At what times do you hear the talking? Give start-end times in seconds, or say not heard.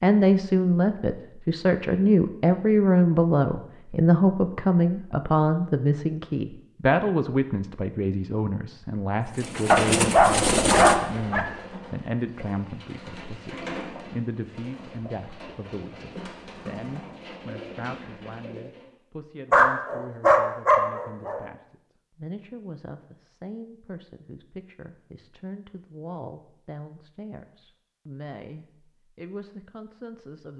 0.0-30.5.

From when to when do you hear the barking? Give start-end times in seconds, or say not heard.
9.7-11.4, 19.5-21.4.